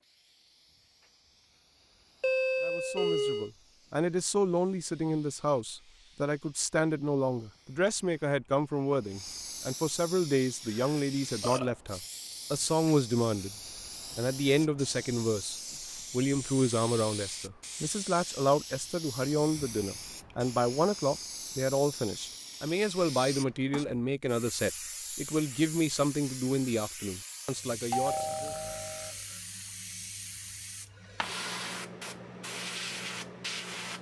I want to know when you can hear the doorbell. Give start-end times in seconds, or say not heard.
2.2-3.5, 27.9-29.1.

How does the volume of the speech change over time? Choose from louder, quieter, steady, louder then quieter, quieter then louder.
steady.